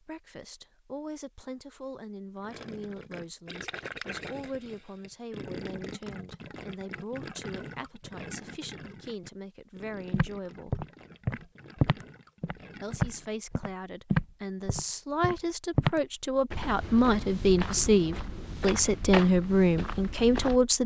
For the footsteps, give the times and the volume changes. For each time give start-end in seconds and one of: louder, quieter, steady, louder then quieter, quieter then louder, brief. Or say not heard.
10.1-20.6 quieter.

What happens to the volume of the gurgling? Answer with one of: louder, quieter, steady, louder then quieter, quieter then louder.
quieter.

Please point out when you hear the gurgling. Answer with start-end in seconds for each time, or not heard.
2.4-13.3.